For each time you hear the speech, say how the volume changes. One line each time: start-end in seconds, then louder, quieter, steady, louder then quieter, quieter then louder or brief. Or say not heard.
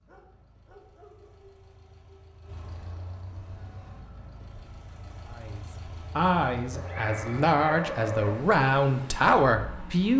5.3-10.1 quieter then louder.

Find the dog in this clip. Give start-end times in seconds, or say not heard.
0.1-2.6, 6.7-8.4.